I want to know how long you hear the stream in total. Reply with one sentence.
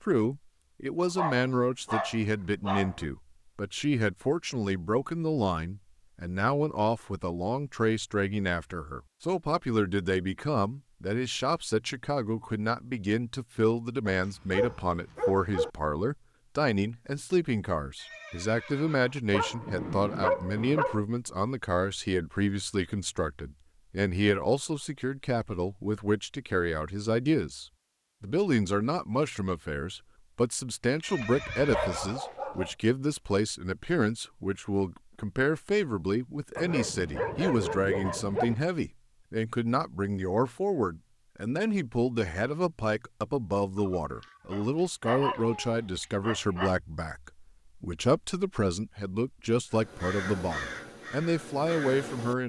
You can't hear the stream here.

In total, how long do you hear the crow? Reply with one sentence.
You can hear the crow for 3 seconds altogether.